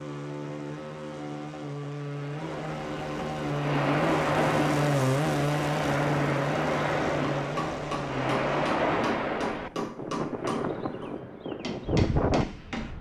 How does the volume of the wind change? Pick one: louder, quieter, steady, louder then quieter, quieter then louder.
steady.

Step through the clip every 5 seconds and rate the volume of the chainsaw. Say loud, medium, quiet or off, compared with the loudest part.
loud, loud, off.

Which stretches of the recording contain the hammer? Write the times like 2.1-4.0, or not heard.
7.3-12.9.